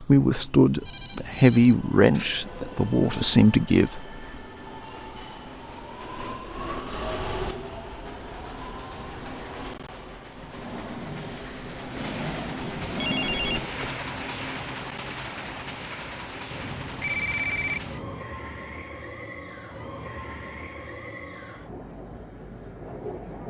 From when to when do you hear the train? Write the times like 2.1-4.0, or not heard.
0.0-23.4.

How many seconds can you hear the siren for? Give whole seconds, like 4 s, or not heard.
not heard.